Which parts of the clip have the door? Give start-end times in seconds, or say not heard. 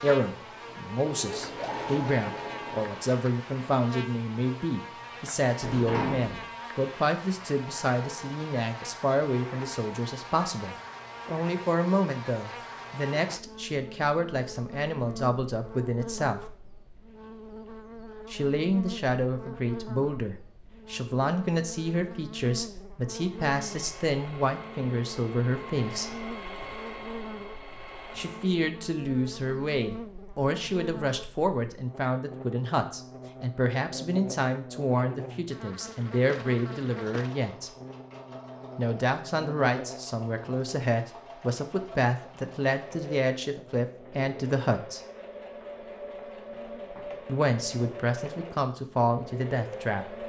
5.6-6.5.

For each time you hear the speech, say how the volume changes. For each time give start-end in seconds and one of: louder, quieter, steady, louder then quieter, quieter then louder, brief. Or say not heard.
0.0-16.4 steady
18.3-26.1 steady
28.1-37.7 steady
38.8-45.0 steady
47.2-50.1 brief.